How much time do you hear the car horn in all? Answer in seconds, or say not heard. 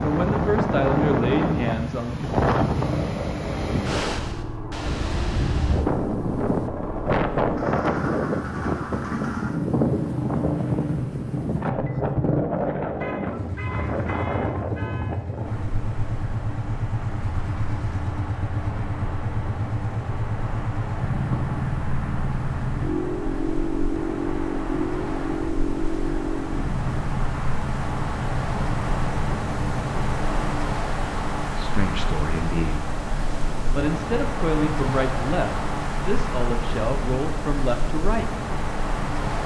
2 s.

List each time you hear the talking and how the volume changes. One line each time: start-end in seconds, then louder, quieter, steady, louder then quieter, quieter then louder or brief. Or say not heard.
0.0-2.3 brief
31.5-32.8 brief
33.7-38.4 steady.